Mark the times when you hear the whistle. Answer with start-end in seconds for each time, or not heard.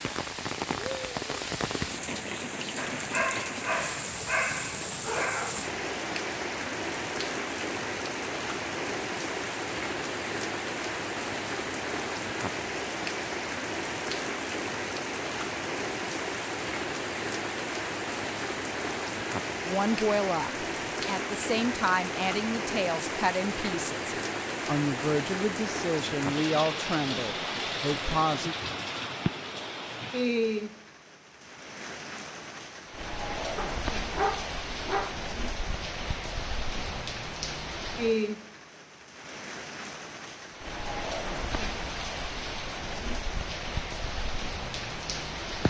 not heard.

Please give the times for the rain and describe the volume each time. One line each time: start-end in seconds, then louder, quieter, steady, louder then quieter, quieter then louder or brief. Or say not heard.
0.0-45.6 steady.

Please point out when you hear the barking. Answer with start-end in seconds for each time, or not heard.
2.8-5.5, 33.5-35.2.